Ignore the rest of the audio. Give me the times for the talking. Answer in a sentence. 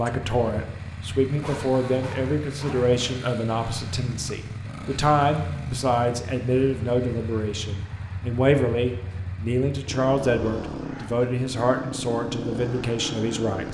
You can hear the talking from 0.0 to 13.6 s.